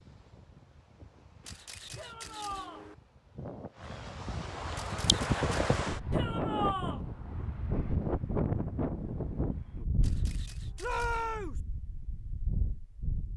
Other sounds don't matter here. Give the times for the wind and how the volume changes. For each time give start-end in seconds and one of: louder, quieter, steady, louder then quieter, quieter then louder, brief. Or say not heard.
0.0-13.3 louder then quieter.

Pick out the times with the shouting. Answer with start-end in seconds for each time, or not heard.
1.9-2.9, 6.1-7.0, 10.8-11.6.